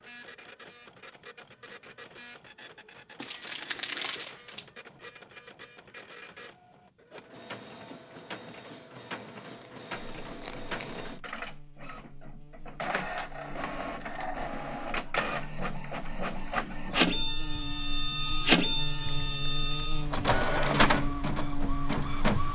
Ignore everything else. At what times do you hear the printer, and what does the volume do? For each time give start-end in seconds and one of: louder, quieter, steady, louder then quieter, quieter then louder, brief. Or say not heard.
0.0-22.4 louder.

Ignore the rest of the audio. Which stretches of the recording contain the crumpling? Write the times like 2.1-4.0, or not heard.
3.2-4.7, 9.6-11.1, 18.9-19.9.